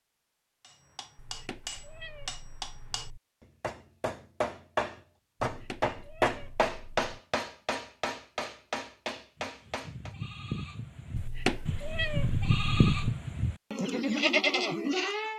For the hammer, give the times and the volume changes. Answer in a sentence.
The hammer can be heard from 0.6 to 10.2 s, getting louder then quieter.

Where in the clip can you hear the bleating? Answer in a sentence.
The bleating can be heard from 9.3 to 15.3 s.